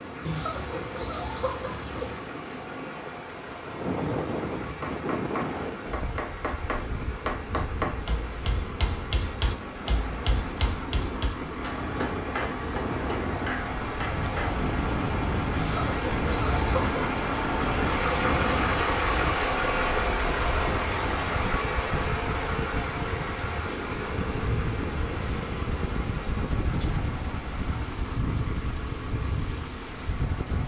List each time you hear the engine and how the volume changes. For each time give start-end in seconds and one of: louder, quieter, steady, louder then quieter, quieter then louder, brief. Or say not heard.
0.0-30.6 louder then quieter.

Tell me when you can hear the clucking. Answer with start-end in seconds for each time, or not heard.
0.2-2.2, 15.6-17.1.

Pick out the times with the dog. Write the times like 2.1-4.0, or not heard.
not heard.